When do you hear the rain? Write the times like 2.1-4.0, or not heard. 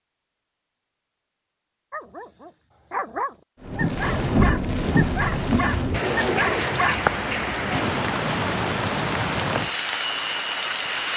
3.6-11.1.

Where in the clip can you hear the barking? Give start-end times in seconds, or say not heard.
1.9-7.0.